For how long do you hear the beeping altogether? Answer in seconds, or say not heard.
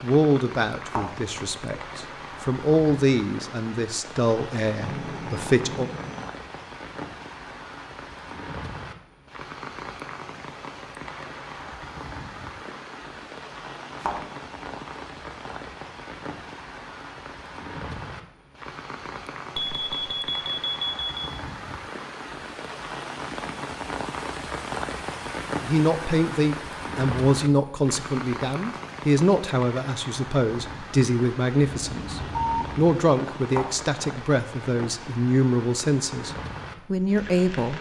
4 s.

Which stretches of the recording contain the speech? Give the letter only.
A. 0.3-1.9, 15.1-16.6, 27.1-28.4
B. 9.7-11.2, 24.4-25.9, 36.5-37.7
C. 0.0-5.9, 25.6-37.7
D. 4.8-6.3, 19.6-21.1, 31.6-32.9
C.